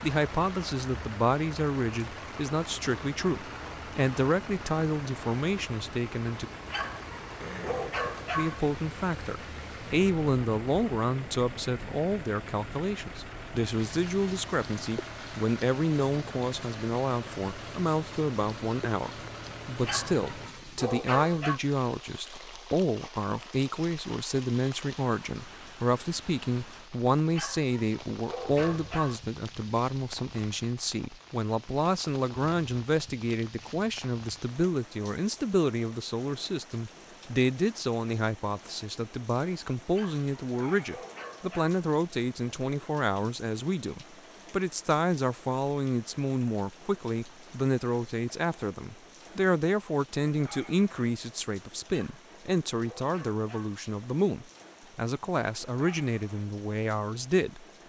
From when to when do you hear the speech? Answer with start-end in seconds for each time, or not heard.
0.0-6.5, 8.3-57.6.